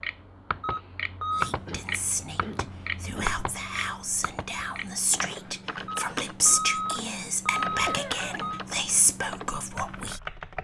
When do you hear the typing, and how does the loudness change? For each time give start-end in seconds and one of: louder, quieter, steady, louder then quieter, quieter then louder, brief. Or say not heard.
0.0-10.5 quieter.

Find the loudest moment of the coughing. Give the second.
8 s.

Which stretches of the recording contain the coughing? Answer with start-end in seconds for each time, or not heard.
1.6-3.5, 7.8-8.4.